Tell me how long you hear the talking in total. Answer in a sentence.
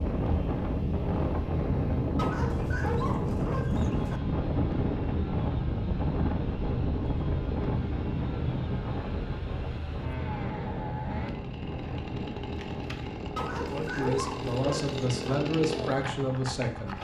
The talking can be heard for 3 seconds in total.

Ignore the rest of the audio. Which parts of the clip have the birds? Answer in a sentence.
You can't hear the birds here.